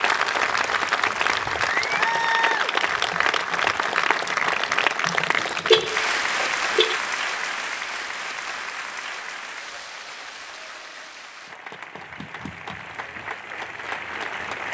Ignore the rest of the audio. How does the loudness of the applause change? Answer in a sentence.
The volume of the applause goes down.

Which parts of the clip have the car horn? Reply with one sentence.
The car horn can be heard from 5.7 to 7.0 s.